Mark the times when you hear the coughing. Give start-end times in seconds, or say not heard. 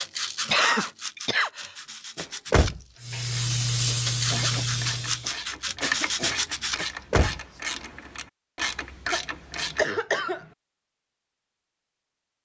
0.5-1.8, 4.3-6.3, 9.1-10.4.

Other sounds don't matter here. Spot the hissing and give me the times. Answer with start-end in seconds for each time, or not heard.
3.0-5.3.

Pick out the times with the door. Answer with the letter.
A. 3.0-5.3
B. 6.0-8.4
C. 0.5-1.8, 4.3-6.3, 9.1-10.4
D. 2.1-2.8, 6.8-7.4
D.